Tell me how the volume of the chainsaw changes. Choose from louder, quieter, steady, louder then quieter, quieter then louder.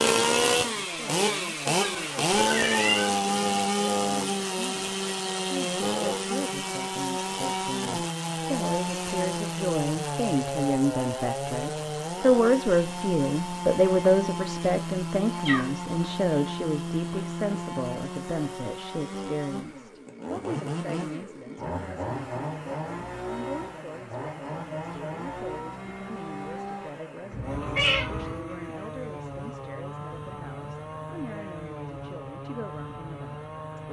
quieter.